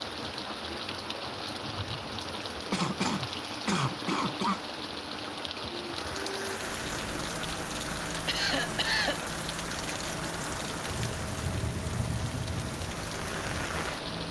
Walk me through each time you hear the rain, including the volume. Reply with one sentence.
You can hear the rain from 0.0 to 14.2 s, at a steady volume.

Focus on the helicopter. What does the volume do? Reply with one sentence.
The volume of the helicopter stays about the same.